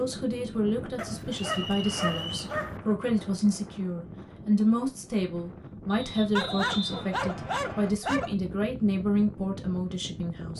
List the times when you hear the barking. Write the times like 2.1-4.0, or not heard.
0.9-2.8, 6.3-8.3.